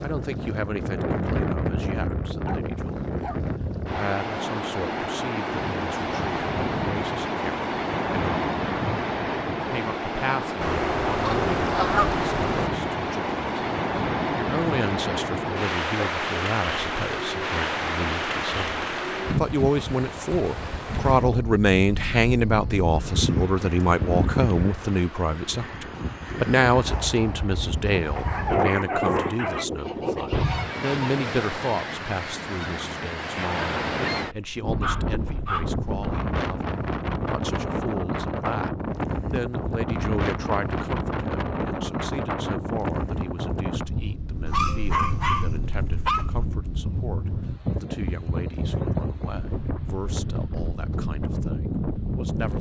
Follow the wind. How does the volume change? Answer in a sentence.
The volume of the wind stays about the same.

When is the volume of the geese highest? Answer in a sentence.
The volume of the geese peaks at 12 seconds.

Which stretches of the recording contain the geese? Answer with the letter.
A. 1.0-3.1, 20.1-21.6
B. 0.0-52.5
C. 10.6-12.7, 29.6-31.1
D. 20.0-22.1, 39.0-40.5
C.